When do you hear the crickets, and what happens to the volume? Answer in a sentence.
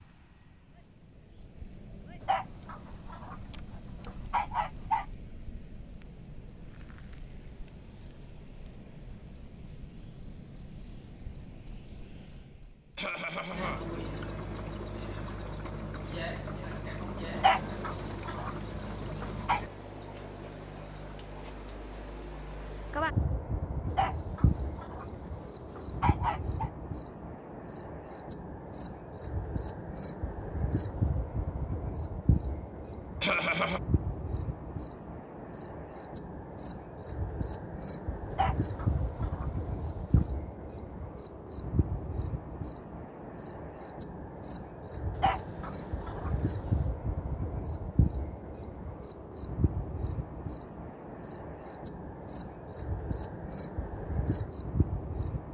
The crickets can be heard from 0.2 to 55.5 s, getting quieter.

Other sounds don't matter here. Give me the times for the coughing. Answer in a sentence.
The coughing can be heard from 12.9 to 13.8 s and from 33.2 to 33.8 s.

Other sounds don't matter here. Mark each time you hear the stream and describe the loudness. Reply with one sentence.
You can't hear the stream here.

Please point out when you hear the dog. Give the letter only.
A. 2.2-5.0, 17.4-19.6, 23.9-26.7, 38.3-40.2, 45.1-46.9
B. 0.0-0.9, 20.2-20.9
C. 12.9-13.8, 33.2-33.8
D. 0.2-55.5
A.